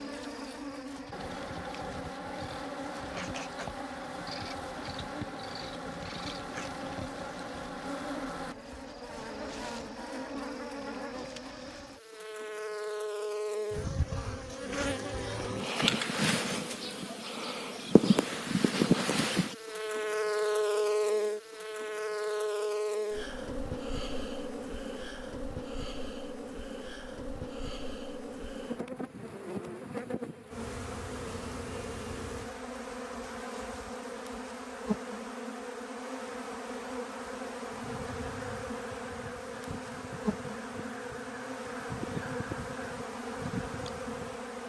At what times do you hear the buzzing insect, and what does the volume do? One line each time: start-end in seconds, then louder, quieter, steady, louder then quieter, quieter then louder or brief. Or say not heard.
0.0-44.6 louder then quieter.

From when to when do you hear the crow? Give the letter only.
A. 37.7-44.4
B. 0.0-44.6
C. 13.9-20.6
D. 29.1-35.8
A.